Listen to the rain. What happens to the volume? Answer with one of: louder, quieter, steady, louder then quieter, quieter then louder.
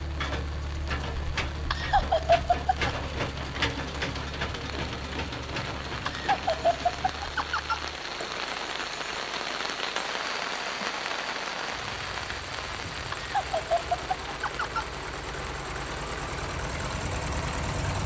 louder then quieter.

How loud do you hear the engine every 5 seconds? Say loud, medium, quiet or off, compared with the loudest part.
loud, medium, medium, loud.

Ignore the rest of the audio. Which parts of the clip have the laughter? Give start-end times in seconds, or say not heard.
1.7-2.9, 6.0-7.8, 13.1-14.8.